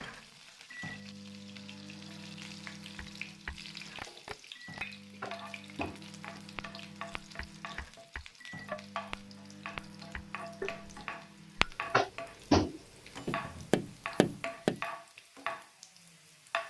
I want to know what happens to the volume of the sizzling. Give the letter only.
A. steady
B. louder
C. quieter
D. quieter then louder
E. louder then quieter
B.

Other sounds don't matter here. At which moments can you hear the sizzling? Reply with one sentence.
The sizzling can be heard from 0.0 to 16.6 s.